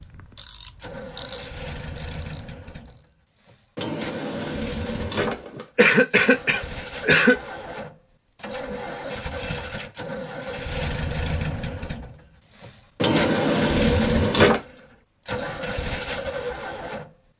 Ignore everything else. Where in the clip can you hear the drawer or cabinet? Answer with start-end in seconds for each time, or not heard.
3.8-5.7, 12.9-14.6.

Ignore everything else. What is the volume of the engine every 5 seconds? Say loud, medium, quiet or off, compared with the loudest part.
medium, medium, loud, loud.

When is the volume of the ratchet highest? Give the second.
1 s.